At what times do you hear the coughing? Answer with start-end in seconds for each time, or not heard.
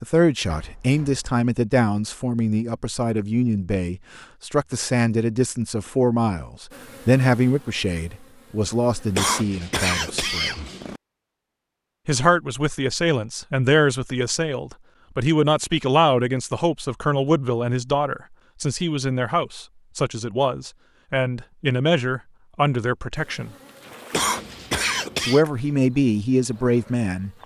9.2-11.0, 24.1-25.4.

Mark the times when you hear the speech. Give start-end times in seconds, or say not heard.
0.0-10.6, 12.1-23.5, 25.2-27.3.